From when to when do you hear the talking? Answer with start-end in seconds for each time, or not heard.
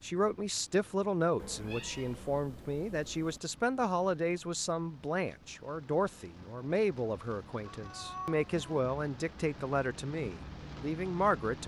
0.0-11.6.